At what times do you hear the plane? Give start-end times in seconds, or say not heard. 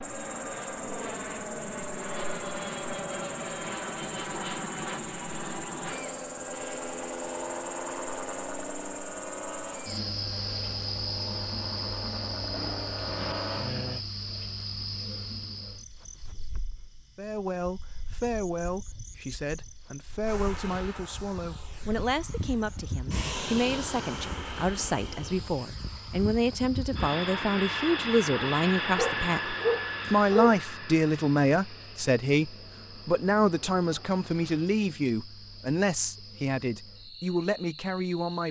0.0-14.1, 20.2-34.5.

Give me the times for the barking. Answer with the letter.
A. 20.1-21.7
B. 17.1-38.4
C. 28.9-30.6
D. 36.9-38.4
C.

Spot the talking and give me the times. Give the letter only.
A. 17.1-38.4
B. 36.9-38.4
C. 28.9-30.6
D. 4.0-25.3
A.